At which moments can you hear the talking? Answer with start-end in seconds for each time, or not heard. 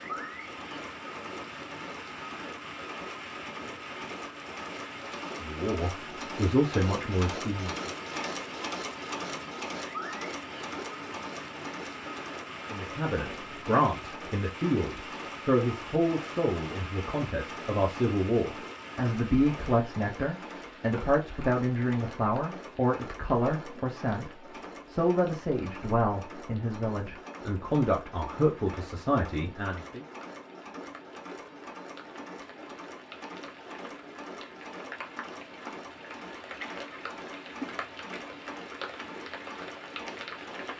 5.4-7.8, 12.7-30.0.